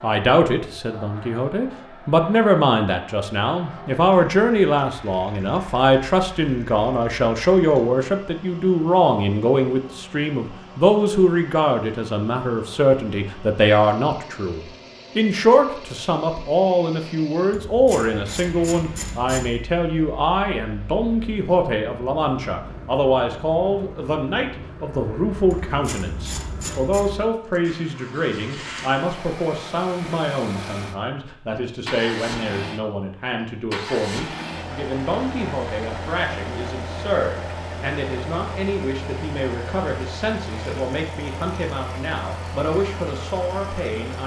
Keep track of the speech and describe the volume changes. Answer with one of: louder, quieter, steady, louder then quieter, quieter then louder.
quieter.